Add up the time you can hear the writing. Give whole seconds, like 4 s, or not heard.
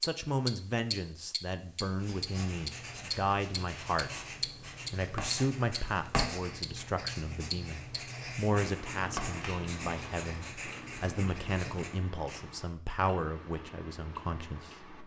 11 s.